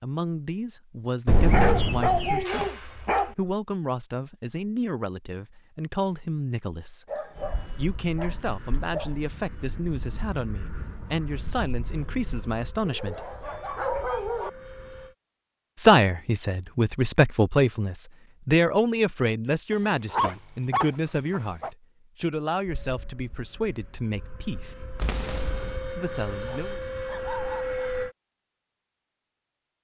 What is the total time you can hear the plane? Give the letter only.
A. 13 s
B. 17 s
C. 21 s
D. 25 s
A.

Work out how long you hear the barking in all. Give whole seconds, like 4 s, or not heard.
9 s.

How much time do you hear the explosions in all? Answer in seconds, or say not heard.
2 s.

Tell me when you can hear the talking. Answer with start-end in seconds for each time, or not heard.
0.0-7.1, 7.8-13.3, 15.8-24.8, 25.9-26.8.